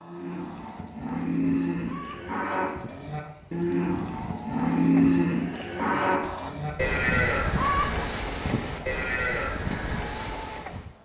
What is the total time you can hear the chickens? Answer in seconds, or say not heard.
11 s.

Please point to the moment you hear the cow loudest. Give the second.
5 s.